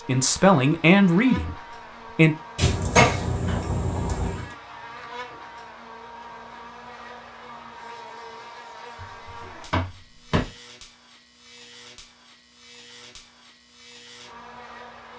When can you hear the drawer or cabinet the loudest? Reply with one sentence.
The loudest moment of the drawer or cabinet is at 3 seconds.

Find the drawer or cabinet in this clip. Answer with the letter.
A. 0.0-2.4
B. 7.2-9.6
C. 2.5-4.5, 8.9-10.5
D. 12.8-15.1
C.